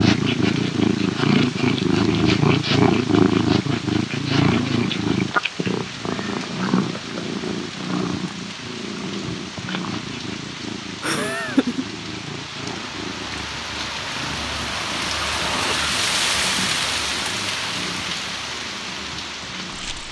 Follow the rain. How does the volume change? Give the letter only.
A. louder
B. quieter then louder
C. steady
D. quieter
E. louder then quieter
A.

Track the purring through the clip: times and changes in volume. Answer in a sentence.
You can hear the purring from 0.0 to 20.0 s, getting quieter.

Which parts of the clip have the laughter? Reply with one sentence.
The laughter can be heard from 11.0 to 11.8 s.